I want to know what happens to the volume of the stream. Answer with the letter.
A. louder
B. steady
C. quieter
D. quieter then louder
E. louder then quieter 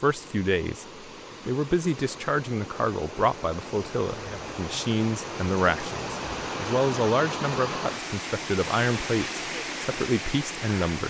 A.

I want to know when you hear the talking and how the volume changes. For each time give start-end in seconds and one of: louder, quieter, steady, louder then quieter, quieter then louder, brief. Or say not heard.
0.0-11.0 steady.